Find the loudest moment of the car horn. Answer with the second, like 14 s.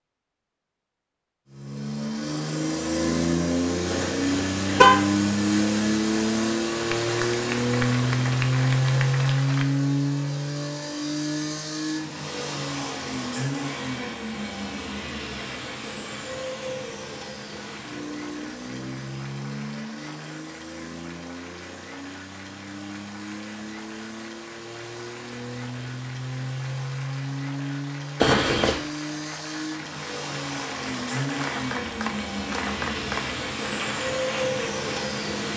5 s.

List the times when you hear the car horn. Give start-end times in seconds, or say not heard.
3.9-5.0, 28.2-28.8.